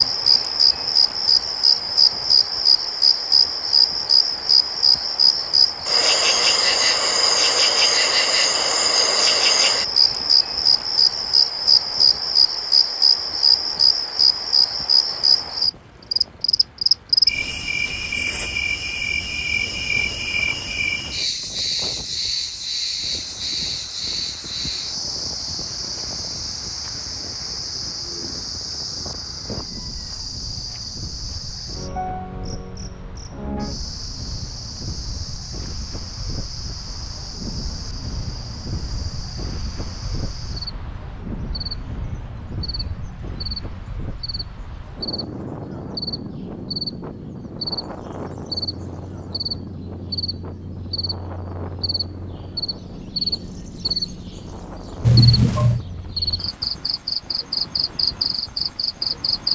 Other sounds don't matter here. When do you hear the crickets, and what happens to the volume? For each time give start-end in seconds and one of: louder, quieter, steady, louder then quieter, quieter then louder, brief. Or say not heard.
0.0-59.4 quieter then louder.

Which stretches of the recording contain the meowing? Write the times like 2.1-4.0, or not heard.
55.0-55.9.